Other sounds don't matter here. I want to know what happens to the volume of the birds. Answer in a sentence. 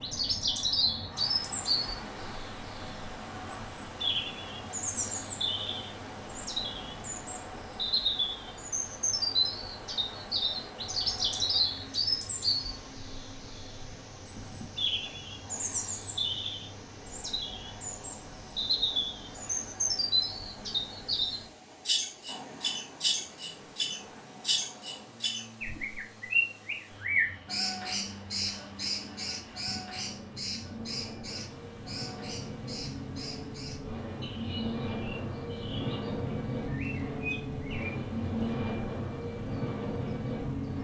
The volume of the birds goes down.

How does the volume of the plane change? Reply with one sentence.
The loudness of the plane goes up.